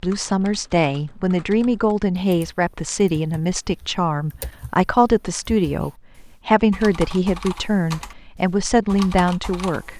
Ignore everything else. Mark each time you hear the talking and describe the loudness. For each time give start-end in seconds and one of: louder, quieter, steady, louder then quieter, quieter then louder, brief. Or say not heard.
0.0-9.9 steady.